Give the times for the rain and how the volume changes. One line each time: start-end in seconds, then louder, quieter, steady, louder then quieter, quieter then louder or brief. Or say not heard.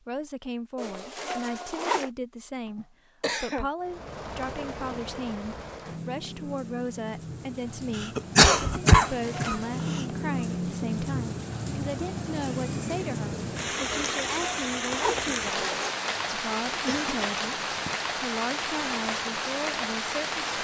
3.8-20.6 louder.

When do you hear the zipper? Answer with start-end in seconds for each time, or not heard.
0.8-2.1, 9.1-10.1, 13.9-15.9.